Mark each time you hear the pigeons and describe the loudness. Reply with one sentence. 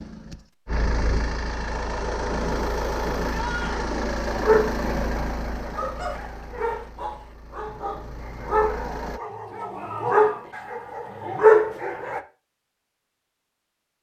You can't hear the pigeons here.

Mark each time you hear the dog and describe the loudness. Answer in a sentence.
You can hear the dog from 3.7 to 12.2 s, getting quieter then louder.